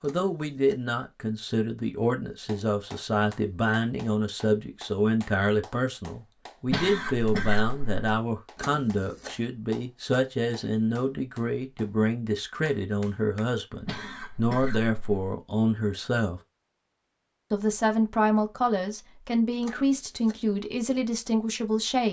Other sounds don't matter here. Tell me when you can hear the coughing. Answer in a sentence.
The coughing can be heard from 6.7 to 8.1 s and from 13.8 to 15.3 s.